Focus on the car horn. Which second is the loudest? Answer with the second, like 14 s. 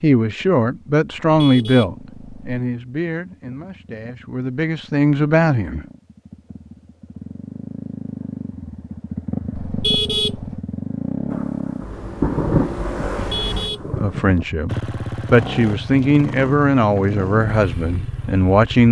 10 s.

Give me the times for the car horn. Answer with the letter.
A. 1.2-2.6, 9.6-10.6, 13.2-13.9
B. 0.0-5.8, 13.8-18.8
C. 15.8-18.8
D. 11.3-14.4
A.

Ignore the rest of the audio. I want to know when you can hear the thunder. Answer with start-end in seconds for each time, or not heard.
11.3-14.4.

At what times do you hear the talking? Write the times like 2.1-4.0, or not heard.
0.0-5.8, 13.8-18.8.